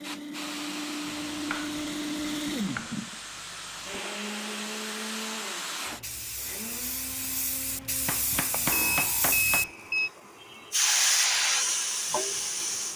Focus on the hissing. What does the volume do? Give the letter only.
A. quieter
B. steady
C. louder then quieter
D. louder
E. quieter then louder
D.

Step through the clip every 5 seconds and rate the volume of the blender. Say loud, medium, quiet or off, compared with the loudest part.
loud, medium, quiet.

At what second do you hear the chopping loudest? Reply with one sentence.
The volume of the chopping peaks at 9 seconds.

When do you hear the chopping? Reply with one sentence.
The chopping can be heard from 1.1 to 3.0 s and from 8.1 to 9.7 s.